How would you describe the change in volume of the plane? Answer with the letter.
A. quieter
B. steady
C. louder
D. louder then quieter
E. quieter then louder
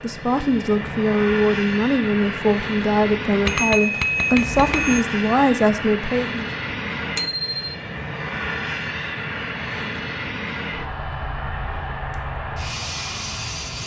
B.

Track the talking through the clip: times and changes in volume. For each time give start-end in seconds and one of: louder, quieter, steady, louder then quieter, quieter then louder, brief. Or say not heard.
0.0-6.5 steady.